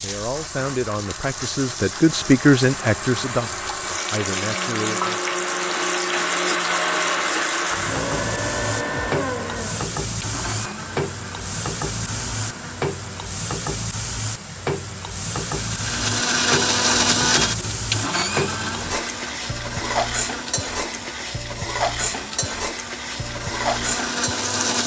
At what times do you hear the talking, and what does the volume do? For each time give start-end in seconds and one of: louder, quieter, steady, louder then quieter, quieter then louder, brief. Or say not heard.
0.0-5.3 louder then quieter.